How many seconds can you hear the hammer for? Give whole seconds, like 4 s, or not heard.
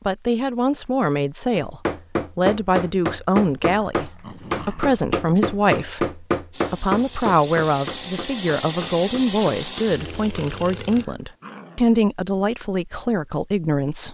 8 s.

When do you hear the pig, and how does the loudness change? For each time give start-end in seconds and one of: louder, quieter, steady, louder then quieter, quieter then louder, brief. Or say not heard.
not heard.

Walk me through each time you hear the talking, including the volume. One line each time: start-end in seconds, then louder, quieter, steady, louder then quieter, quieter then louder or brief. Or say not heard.
0.1-14.0 steady.